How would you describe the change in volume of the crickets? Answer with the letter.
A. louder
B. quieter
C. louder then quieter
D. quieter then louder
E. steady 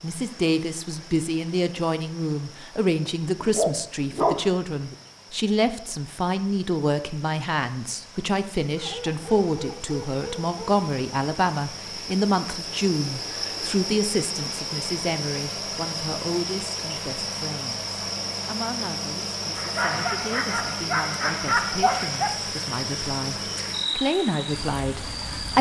A.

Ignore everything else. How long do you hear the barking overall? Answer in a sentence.
The barking can be heard for 6 seconds in total.